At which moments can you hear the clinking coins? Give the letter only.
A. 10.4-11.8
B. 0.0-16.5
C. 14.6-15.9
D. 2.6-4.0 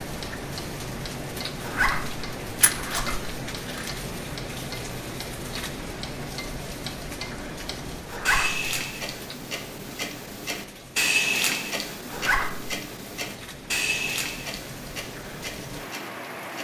D.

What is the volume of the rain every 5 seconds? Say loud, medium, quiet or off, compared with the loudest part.
loud, loud, medium, loud.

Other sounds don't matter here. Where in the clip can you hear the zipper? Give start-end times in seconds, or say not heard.
1.6-3.3, 8.1-8.7, 12.1-12.8.